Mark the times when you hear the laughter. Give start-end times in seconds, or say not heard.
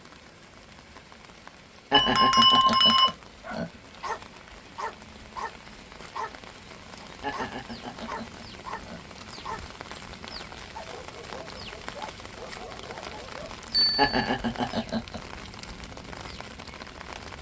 1.9-3.7, 7.2-9.0, 13.9-15.2.